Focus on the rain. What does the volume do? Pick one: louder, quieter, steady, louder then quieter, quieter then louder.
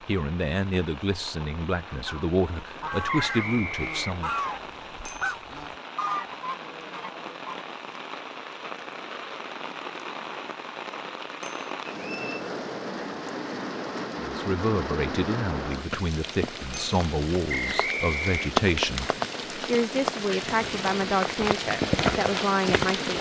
louder.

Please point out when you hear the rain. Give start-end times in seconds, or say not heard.
0.0-23.1.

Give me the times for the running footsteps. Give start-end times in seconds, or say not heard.
not heard.